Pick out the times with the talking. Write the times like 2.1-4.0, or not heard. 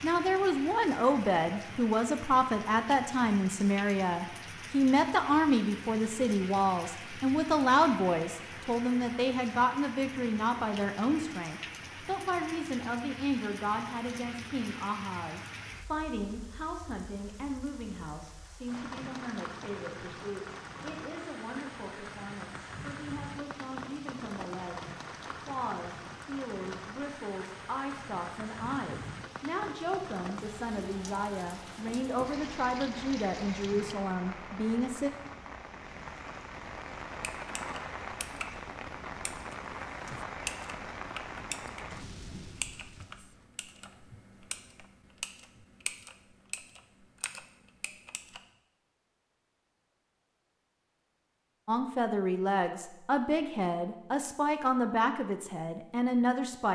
0.0-35.1, 51.6-56.7.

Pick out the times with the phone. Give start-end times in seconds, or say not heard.
not heard.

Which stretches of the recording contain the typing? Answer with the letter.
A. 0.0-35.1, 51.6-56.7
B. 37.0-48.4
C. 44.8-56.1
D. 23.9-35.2
B.